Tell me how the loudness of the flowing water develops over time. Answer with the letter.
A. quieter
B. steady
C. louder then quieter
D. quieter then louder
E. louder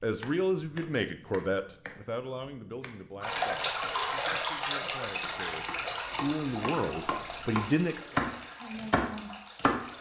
A.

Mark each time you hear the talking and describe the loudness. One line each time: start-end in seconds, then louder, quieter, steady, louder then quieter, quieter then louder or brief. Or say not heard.
0.0-8.1 quieter then louder.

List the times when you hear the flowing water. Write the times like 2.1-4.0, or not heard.
3.2-9.9.